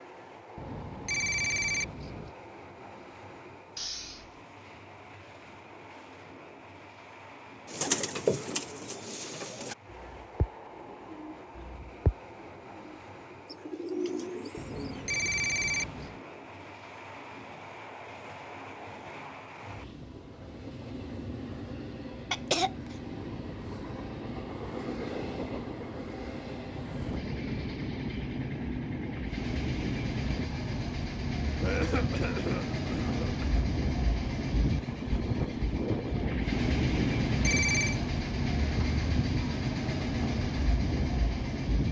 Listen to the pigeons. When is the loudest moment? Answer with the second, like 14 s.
8 s.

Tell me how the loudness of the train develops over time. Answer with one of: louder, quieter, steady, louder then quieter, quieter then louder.
louder.